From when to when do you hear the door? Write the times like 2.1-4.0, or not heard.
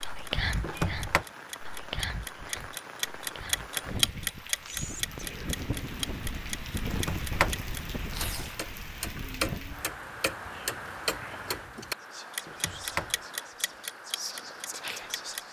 0.6-1.2, 6.9-8.5, 12.4-13.2.